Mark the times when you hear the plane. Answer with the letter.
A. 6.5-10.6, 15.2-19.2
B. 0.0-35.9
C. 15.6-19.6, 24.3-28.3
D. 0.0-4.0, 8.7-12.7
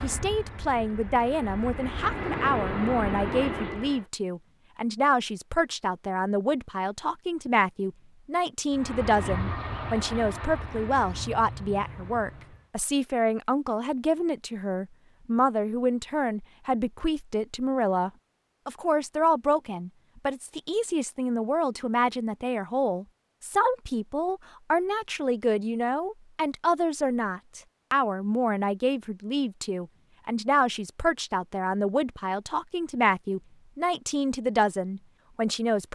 D.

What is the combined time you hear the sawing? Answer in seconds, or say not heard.
not heard.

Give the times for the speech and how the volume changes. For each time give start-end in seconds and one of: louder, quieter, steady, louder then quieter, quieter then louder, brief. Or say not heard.
0.0-35.9 steady.